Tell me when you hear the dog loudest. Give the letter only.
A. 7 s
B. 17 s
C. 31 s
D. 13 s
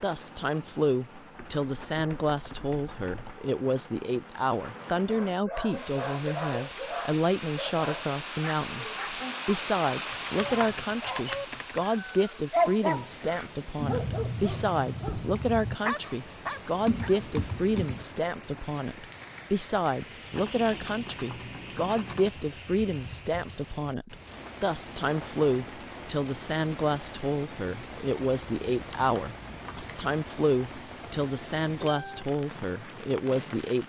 D.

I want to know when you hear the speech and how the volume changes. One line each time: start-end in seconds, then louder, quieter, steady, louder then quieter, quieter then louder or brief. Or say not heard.
0.0-33.8 steady.